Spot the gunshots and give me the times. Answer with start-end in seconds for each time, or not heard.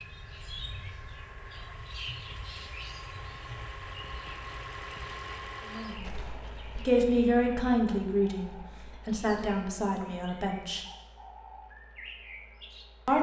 6.0-6.8.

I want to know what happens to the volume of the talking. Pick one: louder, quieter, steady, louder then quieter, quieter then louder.
quieter.